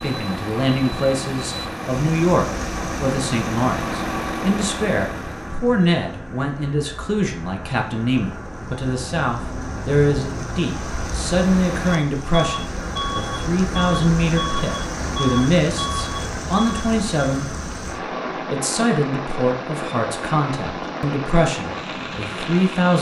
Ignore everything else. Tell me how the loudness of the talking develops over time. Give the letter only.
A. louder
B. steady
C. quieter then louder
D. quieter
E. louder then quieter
B.